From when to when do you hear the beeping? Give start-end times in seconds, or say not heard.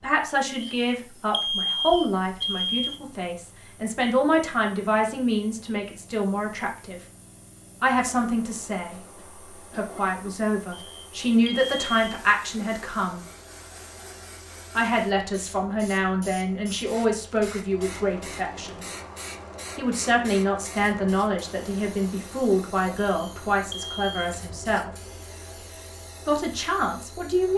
0.6-3.0, 10.7-12.2, 23.0-24.4.